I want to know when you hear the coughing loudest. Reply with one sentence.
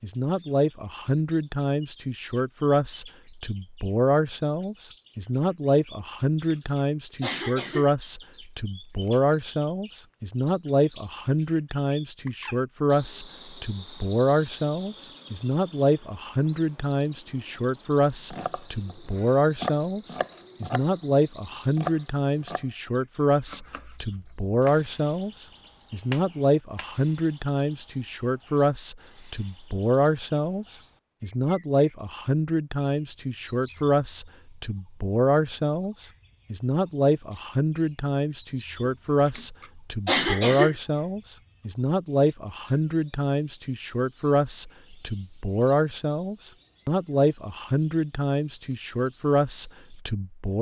The loudest moment of the coughing is at 40 seconds.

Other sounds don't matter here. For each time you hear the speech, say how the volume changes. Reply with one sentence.
The speech can be heard from 0.0 to 50.5 s, at a steady volume.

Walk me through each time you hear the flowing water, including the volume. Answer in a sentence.
You can't hear the flowing water here.